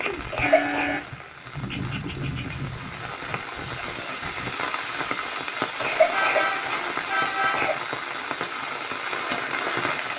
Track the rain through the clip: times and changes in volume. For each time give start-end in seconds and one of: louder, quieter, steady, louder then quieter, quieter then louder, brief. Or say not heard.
0.0-10.1 louder.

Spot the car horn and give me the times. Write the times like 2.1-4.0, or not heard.
0.4-1.1, 6.1-7.8.